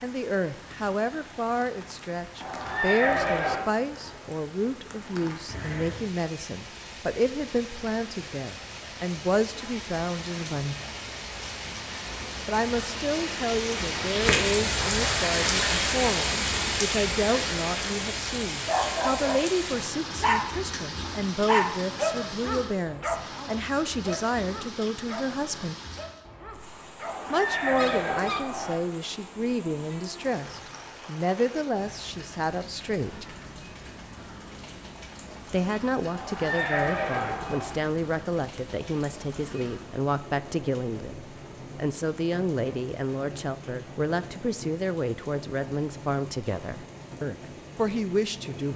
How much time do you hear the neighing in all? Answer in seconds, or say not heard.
5 s.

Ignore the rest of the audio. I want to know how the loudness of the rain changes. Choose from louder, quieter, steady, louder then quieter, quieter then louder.
louder then quieter.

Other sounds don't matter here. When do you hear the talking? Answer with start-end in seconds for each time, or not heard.
0.0-10.8, 12.4-25.8, 27.3-33.2, 35.5-48.7.